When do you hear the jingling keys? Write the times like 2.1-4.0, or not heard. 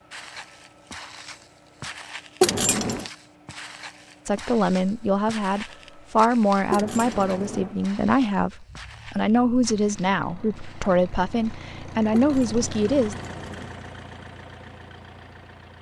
2.4-3.0, 6.7-7.8, 12.1-13.8.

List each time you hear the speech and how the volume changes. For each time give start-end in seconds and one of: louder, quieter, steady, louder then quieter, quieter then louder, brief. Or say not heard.
4.2-13.2 steady.